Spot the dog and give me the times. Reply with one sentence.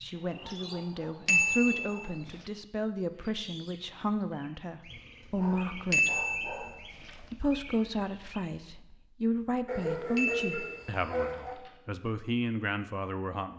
The dog can be heard from 0.1 to 2.1 s, from 4.9 to 6.8 s and from 9.7 to 11.6 s.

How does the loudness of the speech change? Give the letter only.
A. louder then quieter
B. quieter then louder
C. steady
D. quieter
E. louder
C.